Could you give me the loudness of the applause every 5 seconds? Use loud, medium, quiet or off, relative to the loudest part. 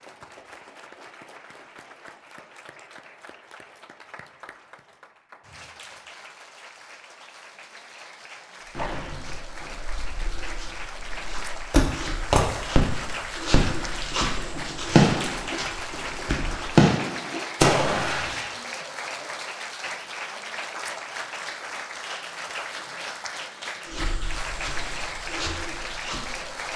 quiet, medium, loud, loud, loud, loud.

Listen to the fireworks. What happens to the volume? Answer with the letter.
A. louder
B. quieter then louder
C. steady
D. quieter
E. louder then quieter
A.